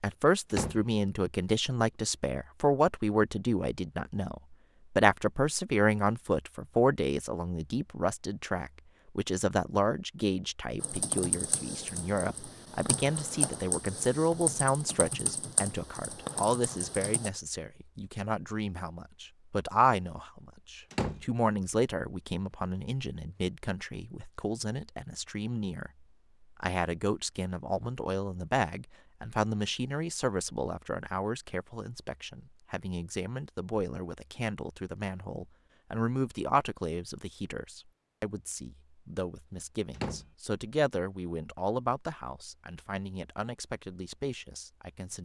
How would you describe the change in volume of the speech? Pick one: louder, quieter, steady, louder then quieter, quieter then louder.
quieter.